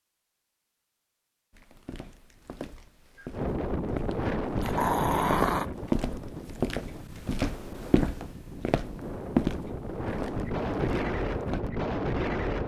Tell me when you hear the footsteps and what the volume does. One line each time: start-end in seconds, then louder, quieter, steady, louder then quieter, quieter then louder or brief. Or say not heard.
1.5-11.7 louder then quieter.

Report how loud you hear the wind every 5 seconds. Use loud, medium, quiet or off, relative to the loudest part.
loud, medium, loud.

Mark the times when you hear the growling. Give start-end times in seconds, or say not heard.
4.6-5.7.